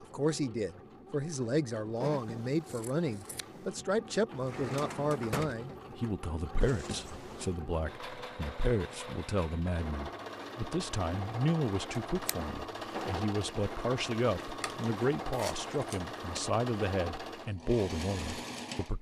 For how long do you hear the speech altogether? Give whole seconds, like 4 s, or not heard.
19 s.